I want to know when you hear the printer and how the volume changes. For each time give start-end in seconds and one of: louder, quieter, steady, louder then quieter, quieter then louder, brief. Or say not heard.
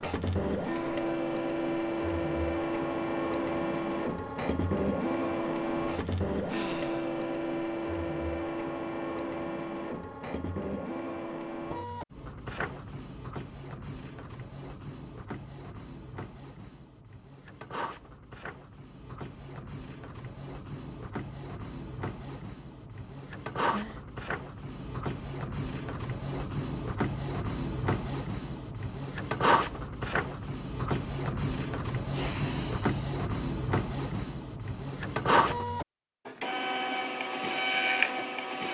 0.0-38.6 quieter then louder.